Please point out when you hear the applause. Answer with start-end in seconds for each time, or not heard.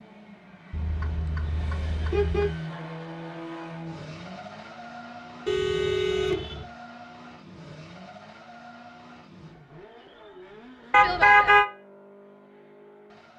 not heard.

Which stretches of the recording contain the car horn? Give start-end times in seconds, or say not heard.
0.7-2.6, 5.5-6.7, 10.9-11.7.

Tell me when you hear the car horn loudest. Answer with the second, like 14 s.
11 s.